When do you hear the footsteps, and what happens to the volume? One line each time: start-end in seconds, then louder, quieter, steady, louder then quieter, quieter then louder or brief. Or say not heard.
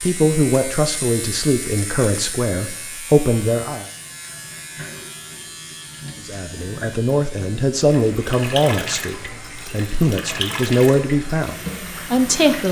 not heard.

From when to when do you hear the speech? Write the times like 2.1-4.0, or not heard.
0.0-3.9, 6.2-12.6.